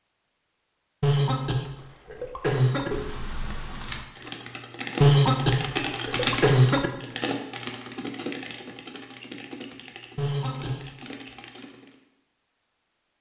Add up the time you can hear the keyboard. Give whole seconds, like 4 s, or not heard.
8 s.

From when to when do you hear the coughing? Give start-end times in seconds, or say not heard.
1.0-2.9, 5.0-6.9, 10.2-10.8.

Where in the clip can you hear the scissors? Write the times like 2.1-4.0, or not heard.
2.9-4.0, 9.2-11.3.